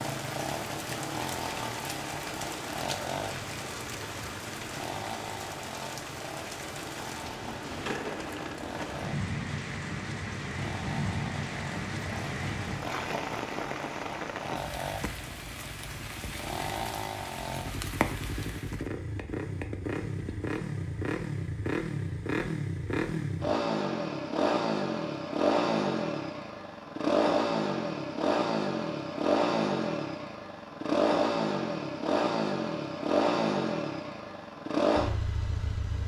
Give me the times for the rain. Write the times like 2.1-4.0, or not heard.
0.0-18.9.